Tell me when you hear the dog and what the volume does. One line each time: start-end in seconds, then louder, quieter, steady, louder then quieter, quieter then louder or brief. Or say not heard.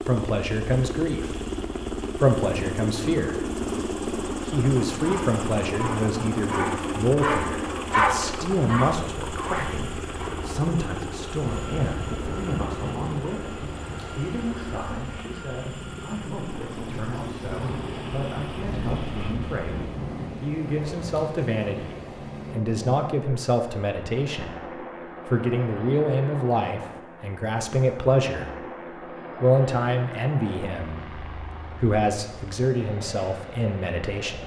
5.0-10.4 louder then quieter.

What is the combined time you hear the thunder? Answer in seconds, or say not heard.
8 s.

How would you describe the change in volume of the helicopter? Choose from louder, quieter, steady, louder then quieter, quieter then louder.
quieter.